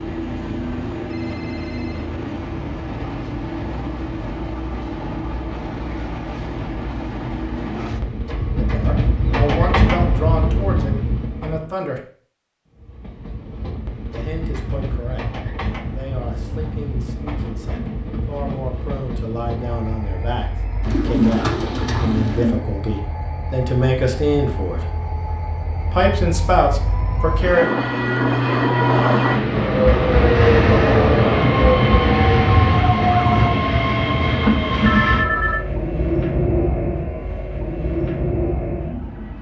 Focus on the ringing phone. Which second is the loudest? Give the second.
35 s.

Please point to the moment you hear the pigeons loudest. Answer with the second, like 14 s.
21 s.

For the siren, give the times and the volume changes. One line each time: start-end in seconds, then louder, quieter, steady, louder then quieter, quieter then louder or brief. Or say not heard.
29.5-33.5 quieter.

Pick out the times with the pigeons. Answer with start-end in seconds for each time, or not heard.
20.8-22.6.